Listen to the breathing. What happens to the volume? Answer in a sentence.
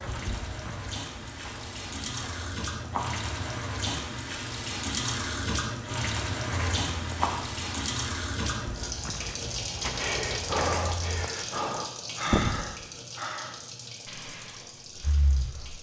The volume of the breathing goes down.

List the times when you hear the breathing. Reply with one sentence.
The breathing can be heard from 9.9 to 15.7 s.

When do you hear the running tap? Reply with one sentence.
The running tap can be heard from 0.0 to 15.7 s.